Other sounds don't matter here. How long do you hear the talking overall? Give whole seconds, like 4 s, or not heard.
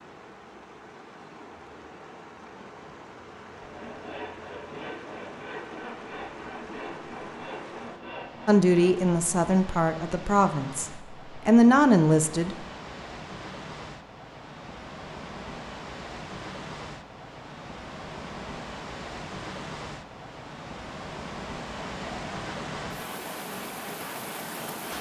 4 s.